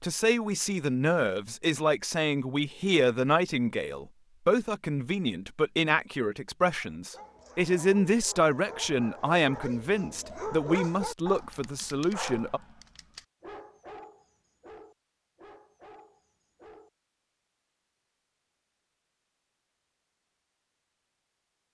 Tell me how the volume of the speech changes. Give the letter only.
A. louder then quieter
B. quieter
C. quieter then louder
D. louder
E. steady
E.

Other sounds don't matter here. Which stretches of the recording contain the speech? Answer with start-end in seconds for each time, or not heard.
0.0-12.6.